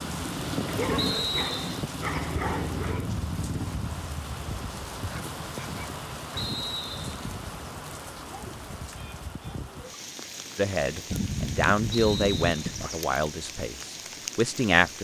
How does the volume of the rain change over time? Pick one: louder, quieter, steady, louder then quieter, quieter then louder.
quieter.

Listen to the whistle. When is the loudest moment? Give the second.
1 s.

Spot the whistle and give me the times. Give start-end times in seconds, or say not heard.
0.9-1.9, 6.3-7.2, 11.9-12.8.